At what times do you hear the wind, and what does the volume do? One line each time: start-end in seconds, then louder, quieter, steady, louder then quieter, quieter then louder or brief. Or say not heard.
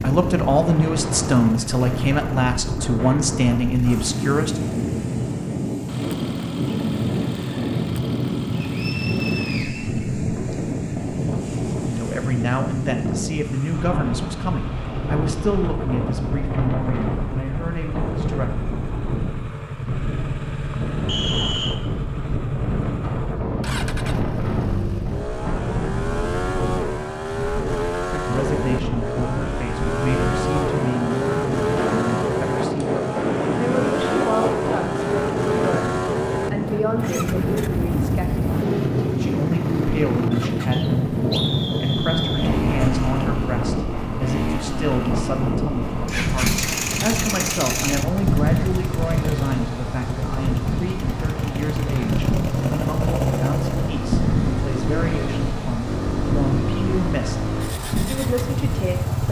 0.0-59.2 steady.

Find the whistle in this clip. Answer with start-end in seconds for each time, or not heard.
8.6-10.6, 21.1-21.8, 40.7-42.5.